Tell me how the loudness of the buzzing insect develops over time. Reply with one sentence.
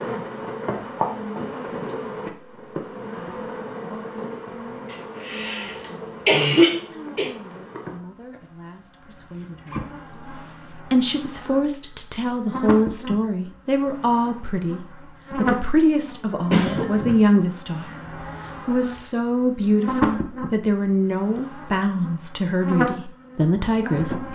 The loudness of the buzzing insect goes down, then up.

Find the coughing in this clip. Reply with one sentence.
You can hear the coughing from 4.9 to 7.3 s and from 15.8 to 16.9 s.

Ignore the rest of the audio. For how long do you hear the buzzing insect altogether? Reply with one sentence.
The buzzing insect can be heard for 24 seconds in total.